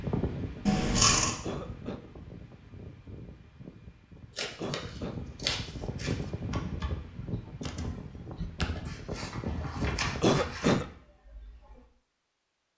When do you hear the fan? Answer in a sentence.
The fan can be heard from 0.0 to 10.3 s.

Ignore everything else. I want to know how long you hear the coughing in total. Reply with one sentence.
You can hear the coughing for 2 seconds altogether.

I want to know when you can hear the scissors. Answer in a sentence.
The scissors can be heard from 0.7 to 1.4 s, from 4.3 to 4.8 s, from 5.4 to 6.2 s and from 8.8 to 10.8 s.